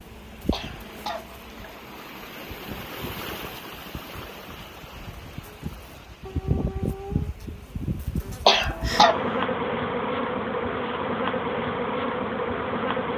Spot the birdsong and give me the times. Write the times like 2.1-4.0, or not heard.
not heard.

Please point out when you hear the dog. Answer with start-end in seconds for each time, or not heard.
6.2-7.3.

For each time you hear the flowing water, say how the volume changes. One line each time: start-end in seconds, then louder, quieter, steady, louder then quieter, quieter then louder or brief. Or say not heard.
0.0-9.5 louder then quieter.